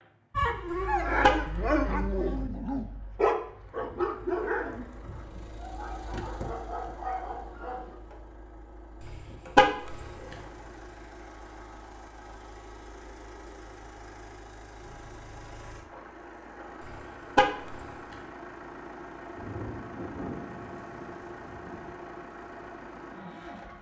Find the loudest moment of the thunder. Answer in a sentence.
The loudest moment of the thunder is at 20 seconds.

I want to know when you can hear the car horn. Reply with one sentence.
The car horn can be heard from 0.7 to 1.4 s, from 9.1 to 10.1 s and from 16.9 to 17.9 s.